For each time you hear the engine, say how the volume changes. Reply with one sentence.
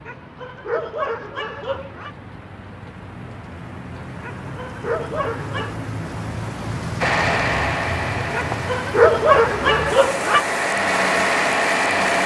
You can hear the engine from 7.0 to 12.2 s, getting quieter then louder.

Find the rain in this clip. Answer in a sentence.
The rain can be heard from 0.0 to 12.2 s.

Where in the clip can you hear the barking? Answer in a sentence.
You can hear the barking from 0.1 to 2.1 s, from 4.2 to 5.8 s and from 8.3 to 10.4 s.